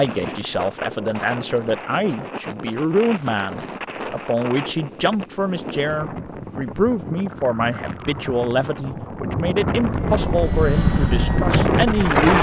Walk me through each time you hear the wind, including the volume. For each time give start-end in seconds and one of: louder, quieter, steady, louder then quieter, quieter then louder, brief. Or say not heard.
0.0-12.3 louder.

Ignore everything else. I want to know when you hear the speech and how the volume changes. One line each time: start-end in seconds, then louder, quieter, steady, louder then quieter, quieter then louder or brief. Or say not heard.
0.0-12.3 steady.